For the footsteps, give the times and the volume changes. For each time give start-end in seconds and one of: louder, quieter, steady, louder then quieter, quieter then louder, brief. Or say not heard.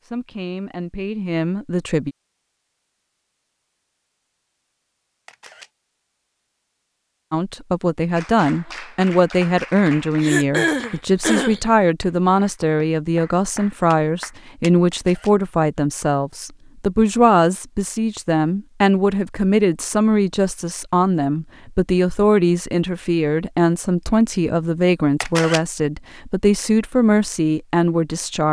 not heard.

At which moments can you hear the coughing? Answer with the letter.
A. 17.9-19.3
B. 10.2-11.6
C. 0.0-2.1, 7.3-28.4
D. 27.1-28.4
B.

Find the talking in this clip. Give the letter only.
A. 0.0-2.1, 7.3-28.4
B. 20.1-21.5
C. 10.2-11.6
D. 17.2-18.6
A.